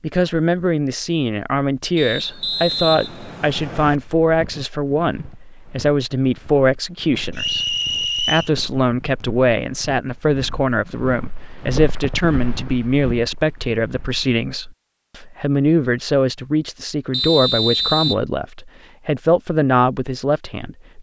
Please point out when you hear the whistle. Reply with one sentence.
You can hear the whistle from 1.9 to 4.0 s, from 7.3 to 8.5 s and from 17.1 to 18.2 s.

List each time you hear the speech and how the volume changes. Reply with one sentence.
The speech can be heard from 0.0 to 20.9 s, at a steady volume.